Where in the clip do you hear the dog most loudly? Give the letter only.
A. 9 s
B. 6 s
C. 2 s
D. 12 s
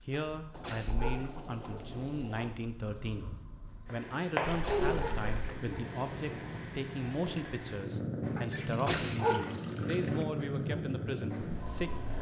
A.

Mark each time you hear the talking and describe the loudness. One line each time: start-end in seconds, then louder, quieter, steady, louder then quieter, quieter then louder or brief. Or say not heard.
0.1-12.1 steady.